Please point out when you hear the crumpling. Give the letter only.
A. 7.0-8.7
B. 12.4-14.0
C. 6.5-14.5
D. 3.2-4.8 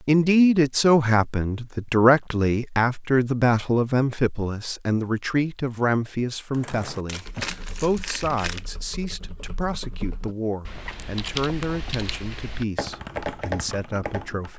A.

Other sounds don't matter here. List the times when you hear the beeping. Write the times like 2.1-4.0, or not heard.
not heard.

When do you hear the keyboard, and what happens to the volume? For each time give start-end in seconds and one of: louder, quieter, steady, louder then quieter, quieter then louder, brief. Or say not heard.
6.5-14.5 louder.